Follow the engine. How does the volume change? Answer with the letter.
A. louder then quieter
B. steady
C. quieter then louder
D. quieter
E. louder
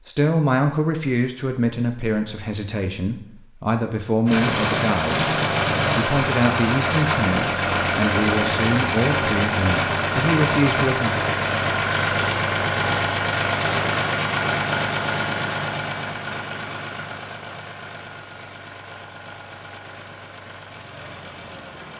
D.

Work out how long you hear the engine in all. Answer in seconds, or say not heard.
18 s.